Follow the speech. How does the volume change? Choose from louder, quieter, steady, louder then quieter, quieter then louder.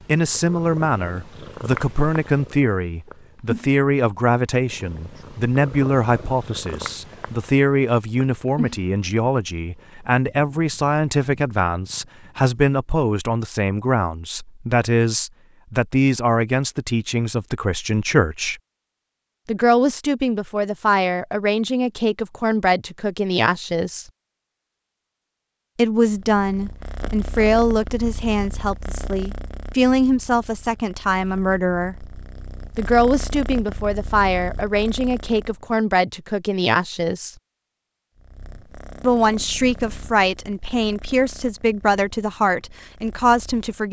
steady.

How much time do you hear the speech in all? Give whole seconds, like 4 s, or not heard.
39 s.